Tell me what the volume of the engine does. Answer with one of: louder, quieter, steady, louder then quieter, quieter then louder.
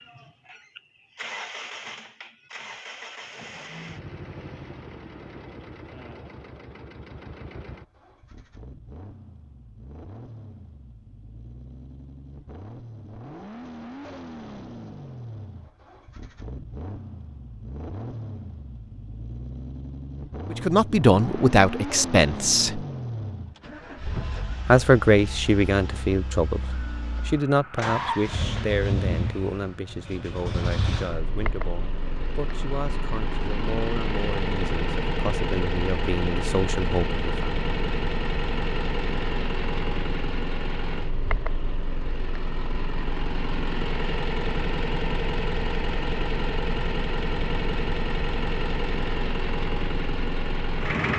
louder.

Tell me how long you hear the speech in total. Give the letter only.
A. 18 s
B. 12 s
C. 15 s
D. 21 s
C.